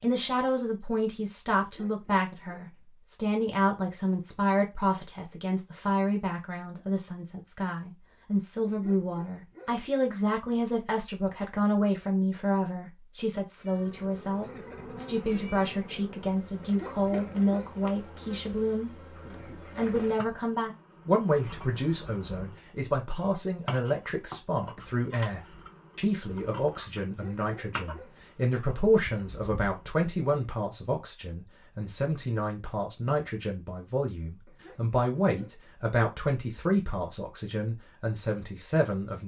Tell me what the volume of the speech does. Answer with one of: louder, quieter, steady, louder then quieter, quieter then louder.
steady.